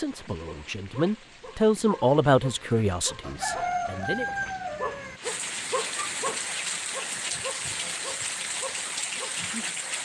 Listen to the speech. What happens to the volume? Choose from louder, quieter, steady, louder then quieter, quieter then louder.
louder then quieter.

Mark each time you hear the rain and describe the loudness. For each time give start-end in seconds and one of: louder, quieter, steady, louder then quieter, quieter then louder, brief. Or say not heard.
0.0-10.0 louder.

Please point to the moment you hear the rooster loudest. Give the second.
4 s.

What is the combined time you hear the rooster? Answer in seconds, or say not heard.
2 s.